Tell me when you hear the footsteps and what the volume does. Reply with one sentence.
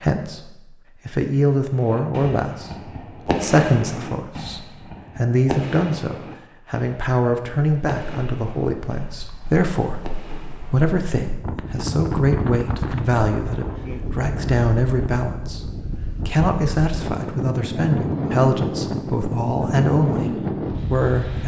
You can't hear the footsteps here.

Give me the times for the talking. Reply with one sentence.
You can hear the talking from 0.0 to 15.7 s and from 16.2 to 21.4 s.